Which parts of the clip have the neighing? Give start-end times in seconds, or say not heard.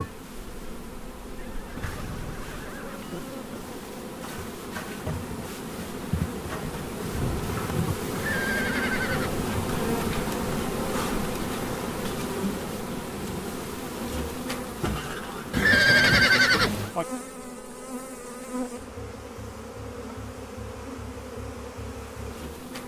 1.4-3.2, 8.1-9.5, 15.5-16.9.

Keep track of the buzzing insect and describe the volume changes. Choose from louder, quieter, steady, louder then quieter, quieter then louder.
louder then quieter.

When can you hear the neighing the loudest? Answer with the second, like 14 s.
16 s.